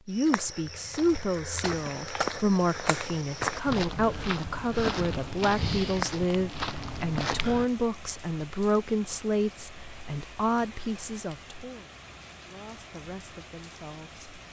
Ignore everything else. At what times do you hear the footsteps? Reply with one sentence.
You can hear the footsteps from 0.1 to 7.7 s.